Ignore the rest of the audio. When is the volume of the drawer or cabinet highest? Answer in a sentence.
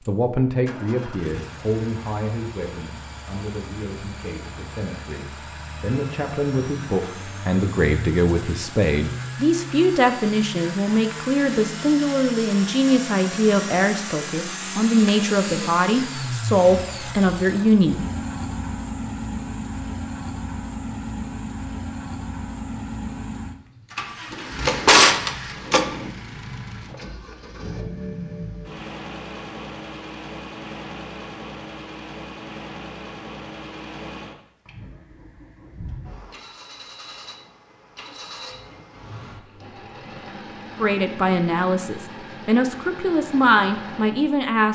The loudest moment of the drawer or cabinet is at 25 seconds.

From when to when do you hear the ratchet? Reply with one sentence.
You can't hear the ratchet here.